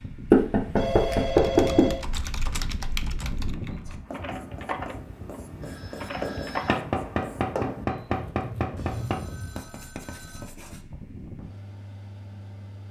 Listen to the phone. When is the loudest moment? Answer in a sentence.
The loudest moment of the phone is at 2 seconds.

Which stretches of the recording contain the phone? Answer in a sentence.
You can hear the phone from 0.8 to 2.0 s, from 5.6 to 6.8 s and from 8.8 to 10.6 s.